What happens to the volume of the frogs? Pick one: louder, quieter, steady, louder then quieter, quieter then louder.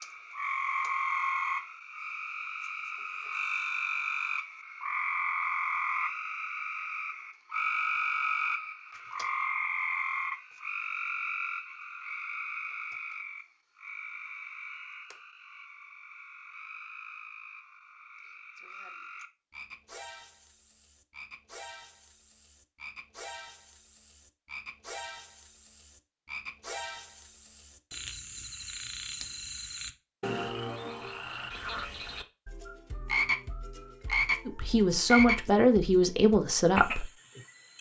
quieter then louder.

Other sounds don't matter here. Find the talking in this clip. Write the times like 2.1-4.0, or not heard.
34.5-37.1.